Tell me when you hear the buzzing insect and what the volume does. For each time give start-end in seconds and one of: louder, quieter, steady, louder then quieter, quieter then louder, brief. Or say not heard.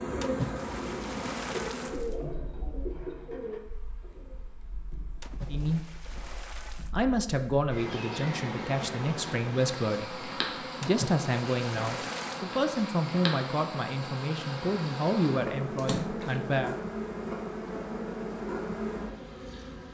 0.0-19.8 quieter then louder.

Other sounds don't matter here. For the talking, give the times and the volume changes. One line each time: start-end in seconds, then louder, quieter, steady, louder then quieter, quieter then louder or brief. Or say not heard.
5.5-6.0 brief
6.8-16.8 steady.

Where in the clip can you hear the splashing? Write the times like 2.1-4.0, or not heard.
0.2-2.1, 5.2-7.0, 10.8-12.4, 15.8-16.8.